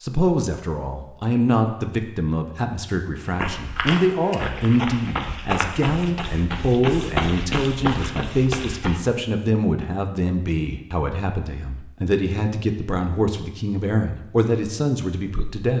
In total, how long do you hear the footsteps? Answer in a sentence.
The footsteps can be heard for 6 seconds in total.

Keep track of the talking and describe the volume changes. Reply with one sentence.
The volume of the talking stays about the same.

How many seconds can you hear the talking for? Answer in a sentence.
The talking can be heard for 16 seconds in total.